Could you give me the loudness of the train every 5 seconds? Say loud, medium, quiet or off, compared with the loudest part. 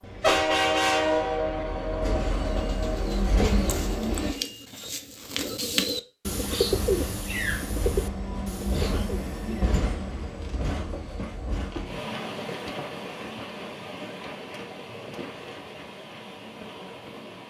loud, medium, medium, quiet.